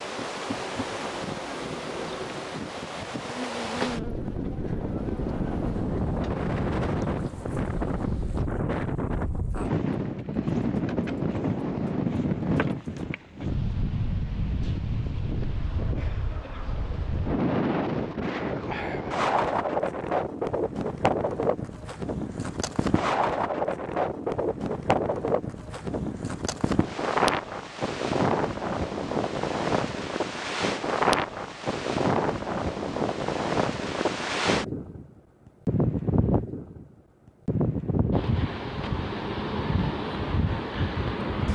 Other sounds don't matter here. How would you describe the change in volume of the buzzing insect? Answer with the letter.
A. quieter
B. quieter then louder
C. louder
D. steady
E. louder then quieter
A.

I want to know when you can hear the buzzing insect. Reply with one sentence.
The buzzing insect can be heard from 0.0 to 8.5 s.